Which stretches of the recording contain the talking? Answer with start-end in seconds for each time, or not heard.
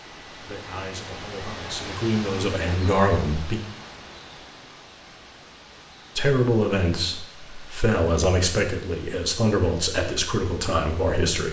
0.3-3.6, 6.2-11.4.